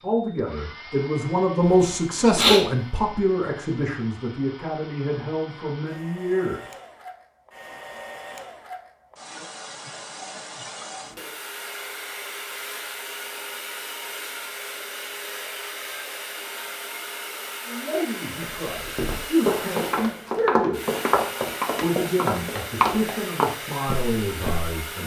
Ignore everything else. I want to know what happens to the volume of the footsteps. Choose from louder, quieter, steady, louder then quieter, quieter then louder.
steady.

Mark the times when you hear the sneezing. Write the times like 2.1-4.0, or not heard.
1.6-2.6.